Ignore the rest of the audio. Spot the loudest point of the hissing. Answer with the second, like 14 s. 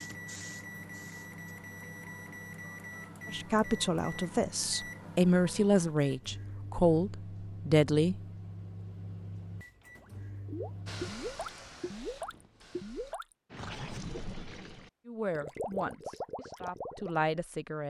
11 s.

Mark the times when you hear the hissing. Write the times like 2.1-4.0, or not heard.
0.0-1.3, 10.8-13.2.